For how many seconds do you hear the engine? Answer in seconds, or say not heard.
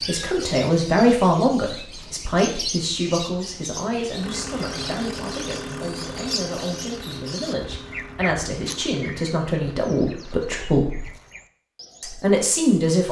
6 s.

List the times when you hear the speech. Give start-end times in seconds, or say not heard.
0.1-11.1, 12.0-13.0.